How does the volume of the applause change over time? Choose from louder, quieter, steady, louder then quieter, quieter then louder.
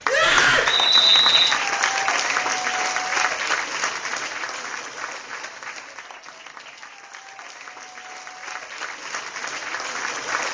quieter then louder.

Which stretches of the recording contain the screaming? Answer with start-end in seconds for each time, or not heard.
0.1-0.7.